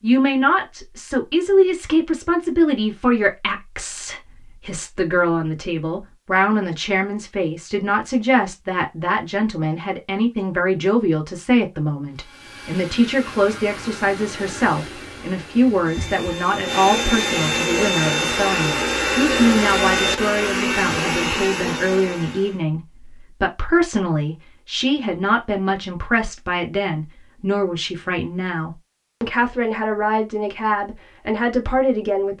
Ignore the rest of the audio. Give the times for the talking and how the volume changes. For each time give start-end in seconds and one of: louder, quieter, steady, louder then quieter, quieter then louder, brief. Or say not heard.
0.0-32.3 steady.